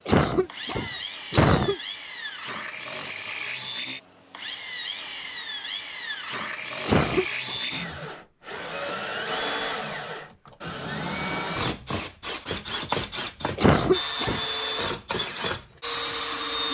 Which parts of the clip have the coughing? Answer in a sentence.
You can hear the coughing from 0.1 to 1.8 s, from 6.8 to 7.6 s and from 13.6 to 14.4 s.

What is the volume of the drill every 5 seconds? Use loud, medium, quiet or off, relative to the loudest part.
medium, loud, loud, loud.